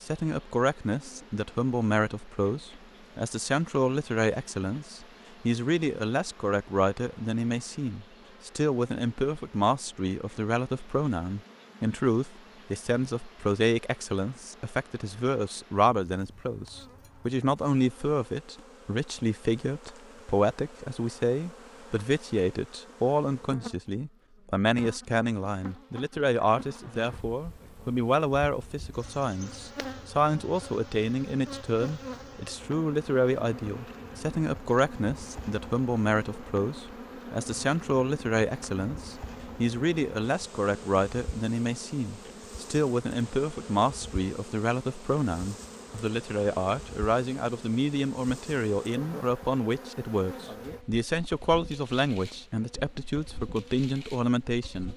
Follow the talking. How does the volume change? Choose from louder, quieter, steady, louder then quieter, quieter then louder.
steady.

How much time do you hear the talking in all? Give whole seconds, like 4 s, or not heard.
55 s.